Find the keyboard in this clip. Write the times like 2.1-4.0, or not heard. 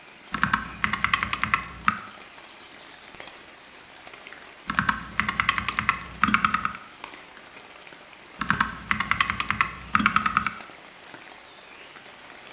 0.3-1.9, 4.7-6.8, 8.4-10.5.